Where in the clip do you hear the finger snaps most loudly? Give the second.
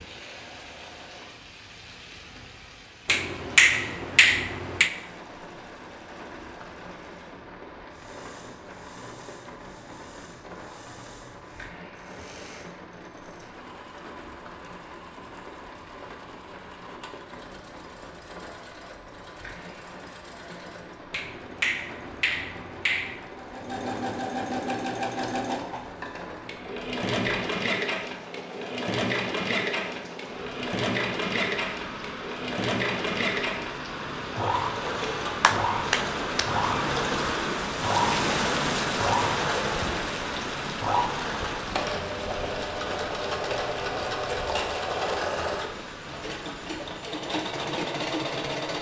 4 s.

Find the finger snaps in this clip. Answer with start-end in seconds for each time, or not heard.
3.0-4.9, 21.1-23.2, 35.0-36.5.